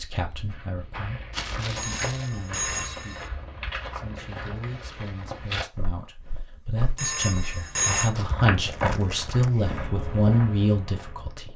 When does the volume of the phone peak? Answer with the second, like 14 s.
8 s.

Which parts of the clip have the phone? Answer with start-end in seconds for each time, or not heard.
1.8-3.3, 7.0-8.2.